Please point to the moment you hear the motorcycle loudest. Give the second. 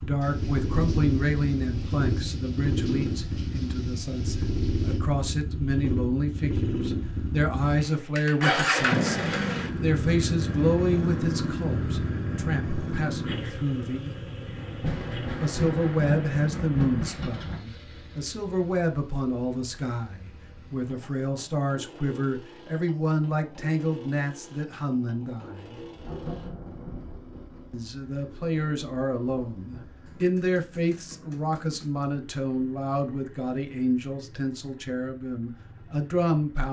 9 s.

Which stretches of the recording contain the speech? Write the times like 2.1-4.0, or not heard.
0.0-14.2, 15.4-25.8, 27.7-36.6.